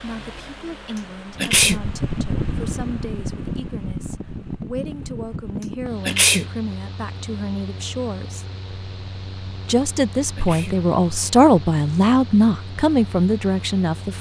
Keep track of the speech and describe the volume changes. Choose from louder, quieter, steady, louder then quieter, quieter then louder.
louder.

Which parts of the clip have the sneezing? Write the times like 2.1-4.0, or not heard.
1.4-1.8, 6.0-6.5, 10.3-10.8.